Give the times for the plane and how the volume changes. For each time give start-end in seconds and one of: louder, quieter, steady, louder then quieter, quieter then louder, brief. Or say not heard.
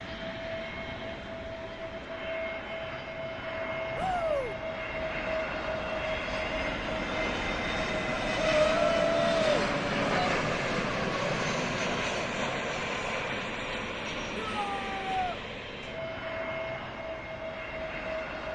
0.0-18.5 louder then quieter.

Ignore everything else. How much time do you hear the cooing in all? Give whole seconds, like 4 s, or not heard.
not heard.